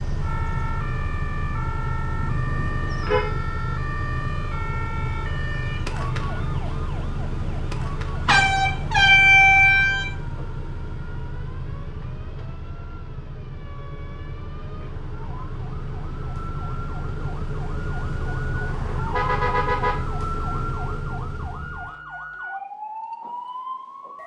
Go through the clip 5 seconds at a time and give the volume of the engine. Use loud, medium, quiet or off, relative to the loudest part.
loud, loud, medium, loud, loud.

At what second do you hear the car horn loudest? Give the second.
9 s.